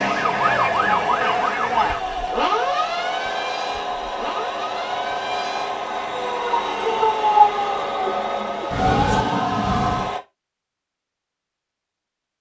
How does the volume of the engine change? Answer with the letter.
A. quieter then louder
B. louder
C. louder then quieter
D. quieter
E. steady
E.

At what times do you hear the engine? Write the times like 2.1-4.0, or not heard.
0.0-10.2.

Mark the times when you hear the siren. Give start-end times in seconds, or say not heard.
0.0-10.2.